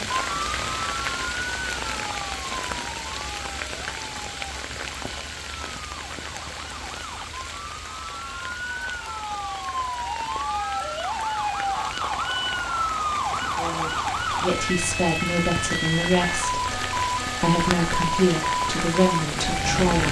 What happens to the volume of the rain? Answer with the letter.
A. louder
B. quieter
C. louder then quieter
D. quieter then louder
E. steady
D.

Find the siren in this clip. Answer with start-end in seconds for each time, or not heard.
0.0-20.0.